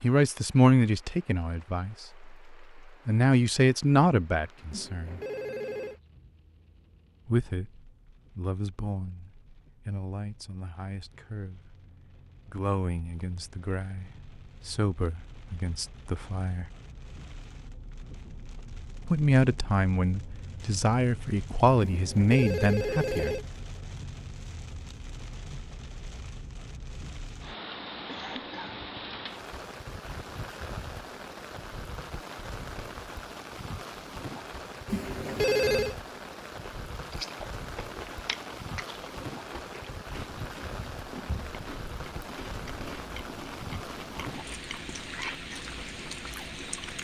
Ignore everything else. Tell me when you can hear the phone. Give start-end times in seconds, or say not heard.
4.7-6.0, 21.8-23.4, 34.9-36.0.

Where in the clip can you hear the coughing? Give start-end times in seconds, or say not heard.
28.1-28.8.